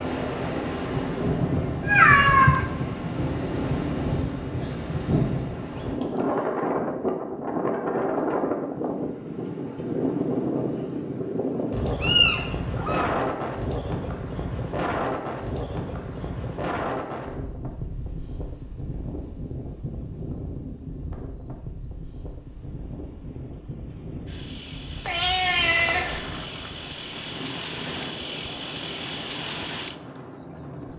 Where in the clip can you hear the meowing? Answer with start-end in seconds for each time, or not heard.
1.9-2.6, 12.0-13.1, 25.1-26.2.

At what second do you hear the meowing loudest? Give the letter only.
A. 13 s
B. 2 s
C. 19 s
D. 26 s
B.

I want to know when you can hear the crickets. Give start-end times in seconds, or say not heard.
14.6-30.9.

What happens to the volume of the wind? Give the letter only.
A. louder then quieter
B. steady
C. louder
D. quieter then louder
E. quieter
E.